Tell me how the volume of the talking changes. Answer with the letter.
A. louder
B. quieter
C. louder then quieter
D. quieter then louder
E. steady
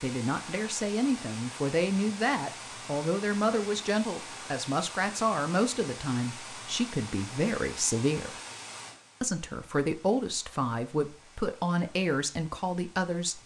E.